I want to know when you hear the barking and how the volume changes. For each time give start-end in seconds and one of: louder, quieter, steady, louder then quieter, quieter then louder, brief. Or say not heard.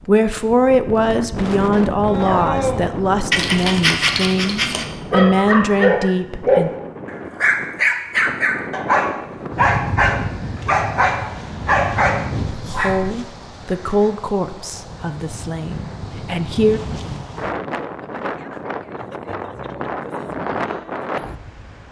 2.0-13.1 steady.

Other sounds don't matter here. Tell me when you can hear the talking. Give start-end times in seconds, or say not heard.
0.1-6.7, 12.7-16.8.